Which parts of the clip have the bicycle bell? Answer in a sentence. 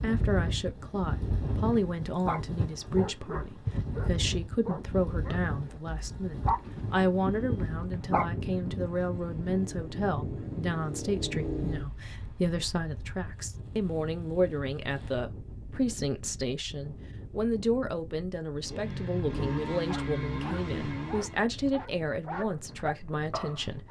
You can't hear the bicycle bell here.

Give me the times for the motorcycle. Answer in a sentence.
The motorcycle can be heard from 8.8 to 11.8 s and from 18.6 to 21.5 s.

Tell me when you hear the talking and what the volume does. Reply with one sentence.
The talking can be heard from 0.0 to 23.8 s, at a steady volume.